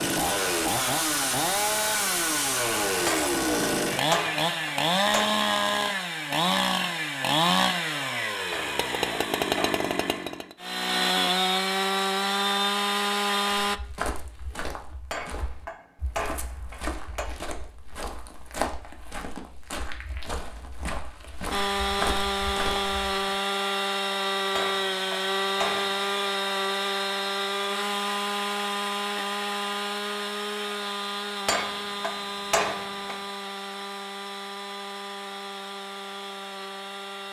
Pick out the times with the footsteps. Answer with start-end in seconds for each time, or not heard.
13.4-23.4.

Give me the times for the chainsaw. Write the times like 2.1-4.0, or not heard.
0.0-13.8, 21.5-37.2.